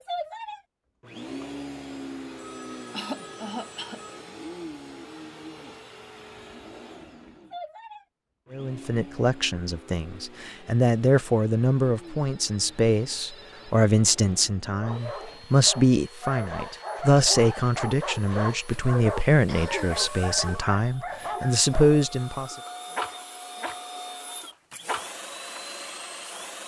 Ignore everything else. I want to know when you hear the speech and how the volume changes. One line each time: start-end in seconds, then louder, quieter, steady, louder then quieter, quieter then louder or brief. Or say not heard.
8.5-22.6 steady.